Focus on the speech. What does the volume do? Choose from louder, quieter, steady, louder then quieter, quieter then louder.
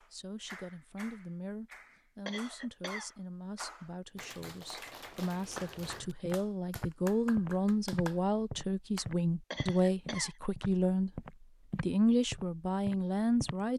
louder.